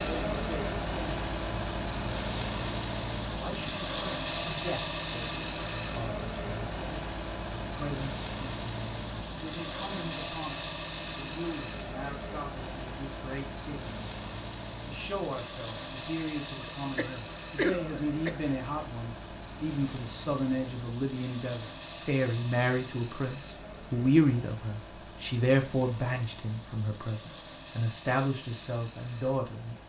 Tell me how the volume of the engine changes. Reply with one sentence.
The loudness of the engine goes down.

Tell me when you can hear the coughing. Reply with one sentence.
The coughing can be heard from 16.6 to 18.6 s.